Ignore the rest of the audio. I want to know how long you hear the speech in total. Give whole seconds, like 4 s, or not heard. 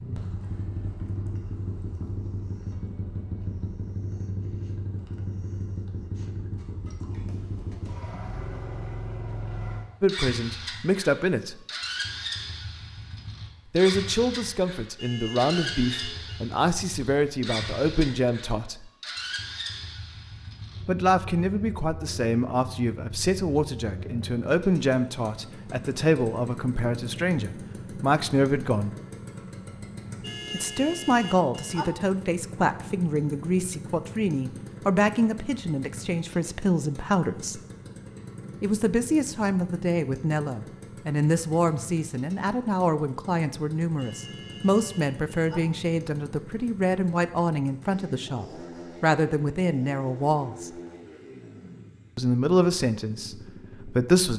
36 s.